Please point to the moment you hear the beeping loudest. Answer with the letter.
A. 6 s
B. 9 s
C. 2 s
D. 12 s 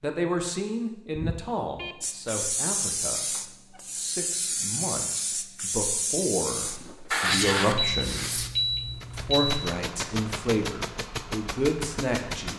B.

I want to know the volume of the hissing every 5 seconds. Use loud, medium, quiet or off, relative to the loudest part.
loud, loud, off.